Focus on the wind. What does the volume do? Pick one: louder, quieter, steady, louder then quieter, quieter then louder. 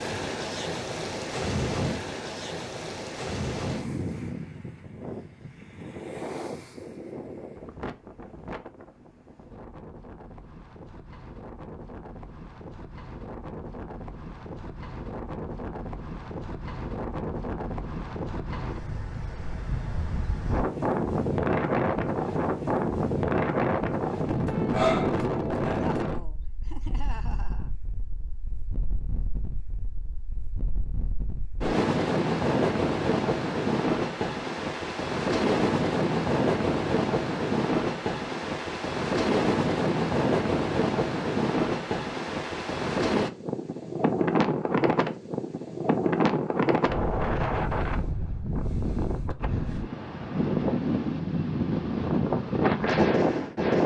louder.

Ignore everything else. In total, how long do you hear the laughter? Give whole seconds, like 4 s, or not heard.
2 s.